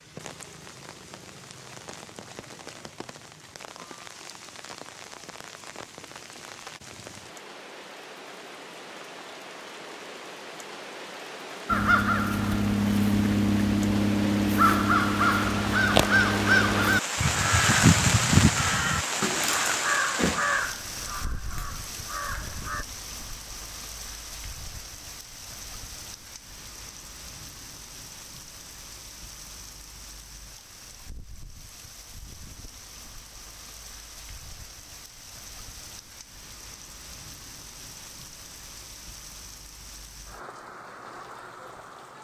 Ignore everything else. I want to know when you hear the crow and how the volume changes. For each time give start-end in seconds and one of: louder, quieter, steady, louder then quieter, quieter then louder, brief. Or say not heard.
11.7-22.9 quieter.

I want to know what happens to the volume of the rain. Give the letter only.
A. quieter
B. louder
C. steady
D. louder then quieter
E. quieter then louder
D.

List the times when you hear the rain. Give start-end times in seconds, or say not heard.
0.0-42.1.